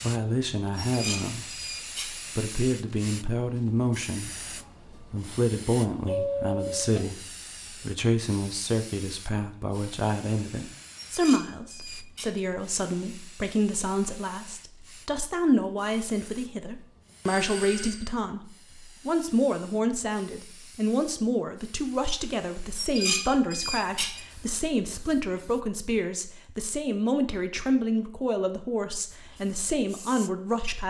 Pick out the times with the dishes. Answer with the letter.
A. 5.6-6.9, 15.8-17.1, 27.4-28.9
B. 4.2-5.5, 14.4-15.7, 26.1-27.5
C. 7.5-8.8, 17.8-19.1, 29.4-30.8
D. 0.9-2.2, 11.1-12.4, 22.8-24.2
D.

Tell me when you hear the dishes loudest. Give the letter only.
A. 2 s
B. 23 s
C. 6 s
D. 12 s
B.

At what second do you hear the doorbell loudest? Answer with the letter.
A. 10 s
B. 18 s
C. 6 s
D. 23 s
C.